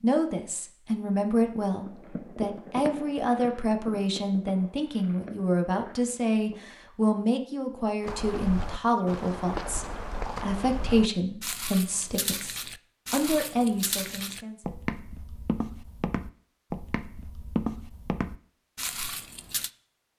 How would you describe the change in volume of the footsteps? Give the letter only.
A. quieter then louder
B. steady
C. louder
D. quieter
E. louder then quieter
B.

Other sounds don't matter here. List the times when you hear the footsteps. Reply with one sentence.
The footsteps can be heard from 8.0 to 19.7 s.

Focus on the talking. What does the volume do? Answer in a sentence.
The loudness of the talking stays about the same.